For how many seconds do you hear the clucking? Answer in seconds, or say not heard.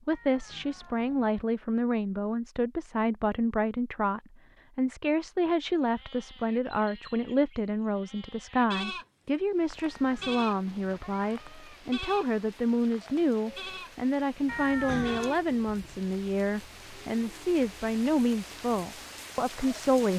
not heard.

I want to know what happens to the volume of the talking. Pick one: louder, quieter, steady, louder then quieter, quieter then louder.
steady.